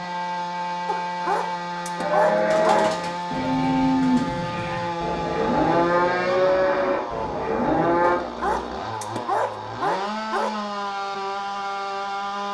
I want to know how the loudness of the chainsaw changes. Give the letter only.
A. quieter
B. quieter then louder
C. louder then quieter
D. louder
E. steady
E.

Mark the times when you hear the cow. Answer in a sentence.
You can hear the cow from 1.9 to 8.2 s.